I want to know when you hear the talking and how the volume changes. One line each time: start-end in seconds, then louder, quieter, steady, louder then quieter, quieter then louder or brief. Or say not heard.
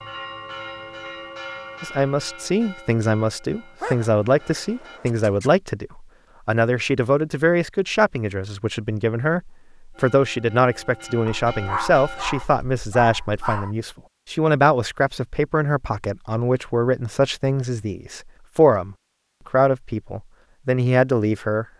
1.8-21.6 steady.